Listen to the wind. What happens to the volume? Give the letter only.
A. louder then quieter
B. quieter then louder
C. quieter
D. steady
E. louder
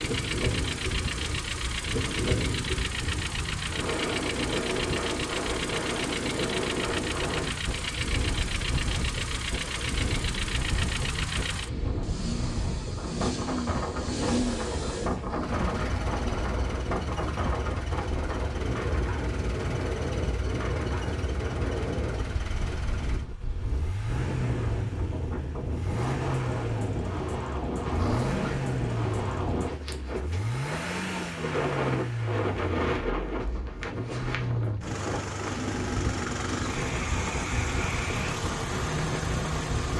D.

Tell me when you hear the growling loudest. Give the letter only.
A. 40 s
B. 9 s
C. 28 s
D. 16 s
C.